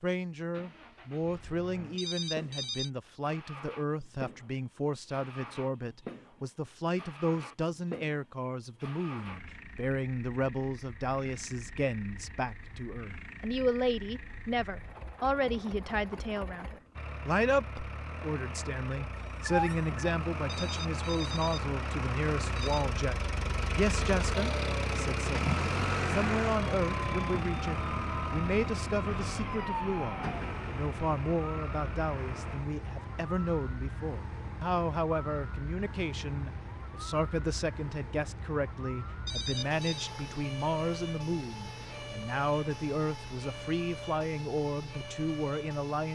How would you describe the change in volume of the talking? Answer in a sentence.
The loudness of the talking stays about the same.